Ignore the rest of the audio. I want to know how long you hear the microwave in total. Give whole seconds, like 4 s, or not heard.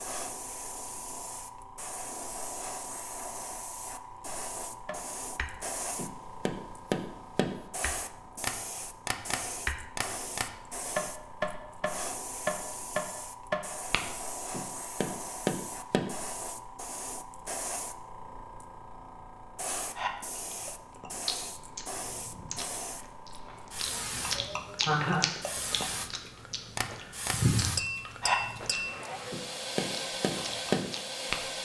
not heard.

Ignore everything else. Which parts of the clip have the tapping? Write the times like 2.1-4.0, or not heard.
4.8-16.1, 26.8-31.4.